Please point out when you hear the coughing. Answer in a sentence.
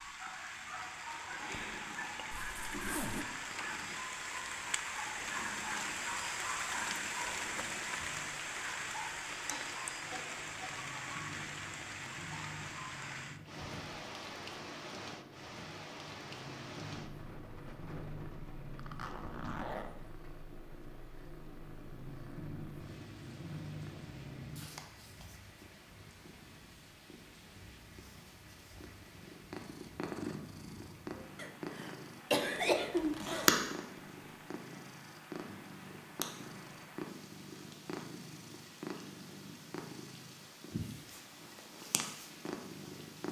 The coughing can be heard from 9.5 to 10.7 s and from 31.4 to 33.1 s.